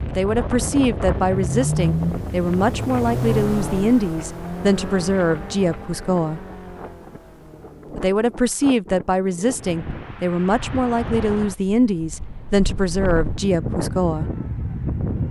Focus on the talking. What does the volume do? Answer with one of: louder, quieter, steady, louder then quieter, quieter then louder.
steady.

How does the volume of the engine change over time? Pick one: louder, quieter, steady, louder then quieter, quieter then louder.
quieter.